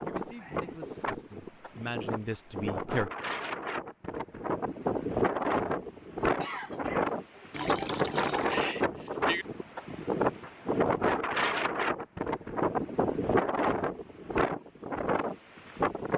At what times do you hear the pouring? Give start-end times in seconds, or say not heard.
7.5-8.8.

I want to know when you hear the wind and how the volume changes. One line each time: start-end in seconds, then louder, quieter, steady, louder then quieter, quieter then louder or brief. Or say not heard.
0.0-16.1 louder.